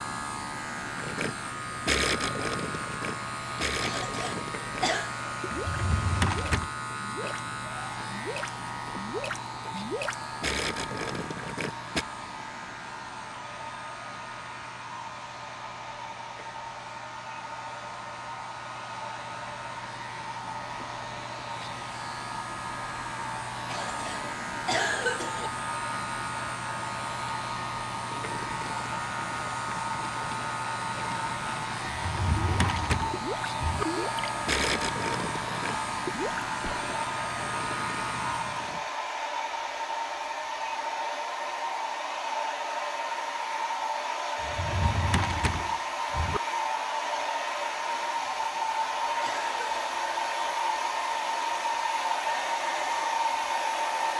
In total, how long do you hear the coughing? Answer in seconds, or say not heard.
5 s.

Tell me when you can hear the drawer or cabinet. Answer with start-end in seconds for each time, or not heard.
5.5-6.7, 31.9-33.9, 44.4-46.4.